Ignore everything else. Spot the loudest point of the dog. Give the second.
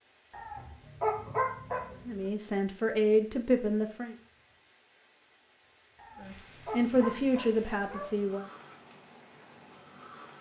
1 s.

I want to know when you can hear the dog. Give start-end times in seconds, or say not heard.
0.3-2.2, 6.0-8.2.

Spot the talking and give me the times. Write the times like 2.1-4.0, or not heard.
2.0-4.2, 6.2-8.4.